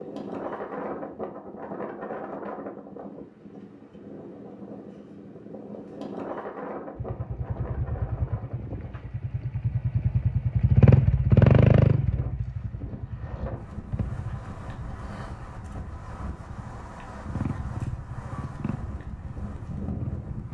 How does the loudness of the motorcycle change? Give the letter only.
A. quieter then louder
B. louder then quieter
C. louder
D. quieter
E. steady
B.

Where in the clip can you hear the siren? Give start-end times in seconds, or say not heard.
not heard.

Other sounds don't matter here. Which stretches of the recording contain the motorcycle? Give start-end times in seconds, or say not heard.
7.0-20.5.